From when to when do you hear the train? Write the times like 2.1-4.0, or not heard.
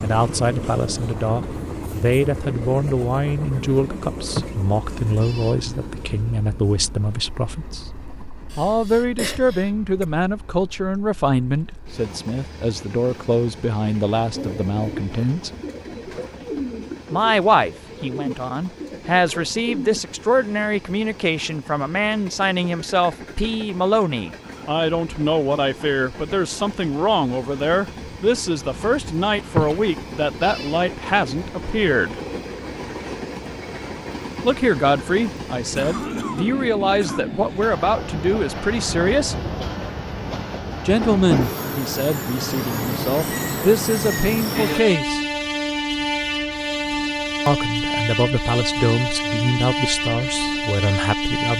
0.0-51.5.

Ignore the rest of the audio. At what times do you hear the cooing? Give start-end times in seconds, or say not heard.
14.3-20.0.